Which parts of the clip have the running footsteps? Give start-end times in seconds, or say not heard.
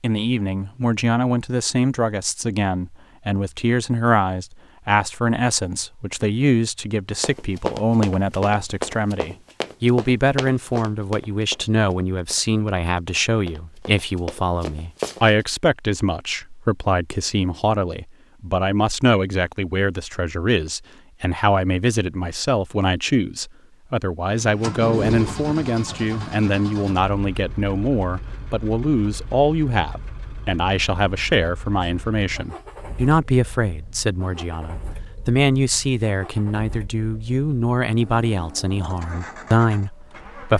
7.2-15.4.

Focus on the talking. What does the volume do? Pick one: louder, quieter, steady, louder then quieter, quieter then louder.
steady.